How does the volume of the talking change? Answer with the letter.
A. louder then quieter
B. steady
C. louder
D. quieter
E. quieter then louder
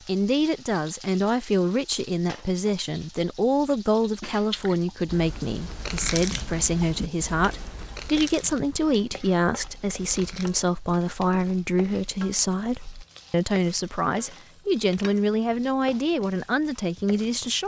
B.